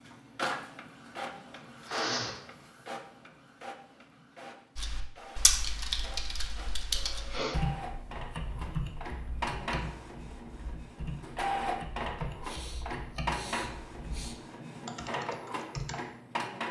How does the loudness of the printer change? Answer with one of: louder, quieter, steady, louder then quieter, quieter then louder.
quieter then louder.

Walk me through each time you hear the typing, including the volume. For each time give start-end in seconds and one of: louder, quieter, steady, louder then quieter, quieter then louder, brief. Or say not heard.
4.8-15.9 quieter.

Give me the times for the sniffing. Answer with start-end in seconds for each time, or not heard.
1.9-2.5, 6.5-7.8, 12.4-14.4.